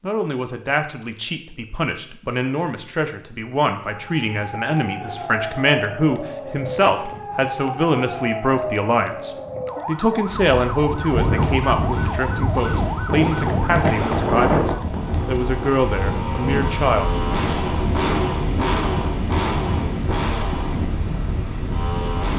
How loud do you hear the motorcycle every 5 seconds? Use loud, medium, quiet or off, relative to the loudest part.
off, off, medium, loud, loud.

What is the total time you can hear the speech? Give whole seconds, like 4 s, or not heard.
17 s.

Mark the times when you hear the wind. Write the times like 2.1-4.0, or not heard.
10.2-22.3.